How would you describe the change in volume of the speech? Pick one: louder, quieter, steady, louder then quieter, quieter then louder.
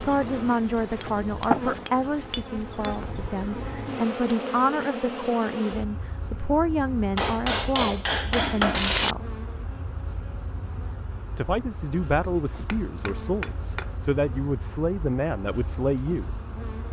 steady.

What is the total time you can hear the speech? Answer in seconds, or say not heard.
14 s.